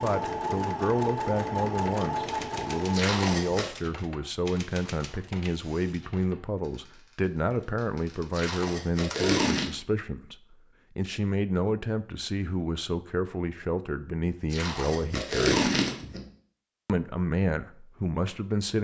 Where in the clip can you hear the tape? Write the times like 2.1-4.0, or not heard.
2.9-3.7, 8.3-9.7, 14.5-16.2.